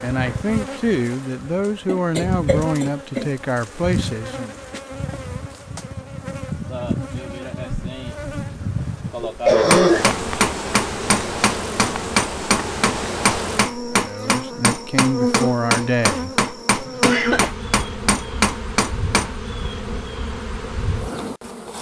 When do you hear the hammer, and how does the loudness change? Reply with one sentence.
The hammer can be heard from 9.7 to 19.4 s, at a steady volume.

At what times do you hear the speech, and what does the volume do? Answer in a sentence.
The speech can be heard from 0.0 to 4.5 s, at a steady volume; and briefly from 13.9 to 16.4 s.